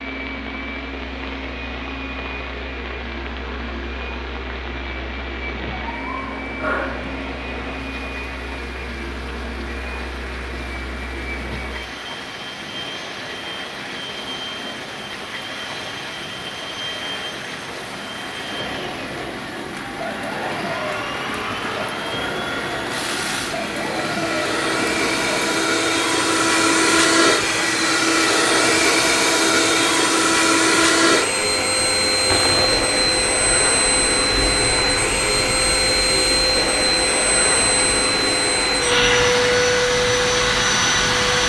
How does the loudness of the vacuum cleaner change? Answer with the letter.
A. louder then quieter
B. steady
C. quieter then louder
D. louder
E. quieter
D.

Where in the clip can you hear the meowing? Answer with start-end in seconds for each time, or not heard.
5.7-7.2.